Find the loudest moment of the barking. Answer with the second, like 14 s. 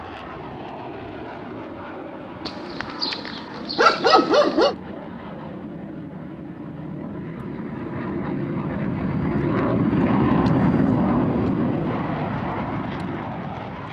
4 s.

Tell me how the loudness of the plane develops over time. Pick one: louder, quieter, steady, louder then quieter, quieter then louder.
louder.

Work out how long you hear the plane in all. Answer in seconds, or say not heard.
14 s.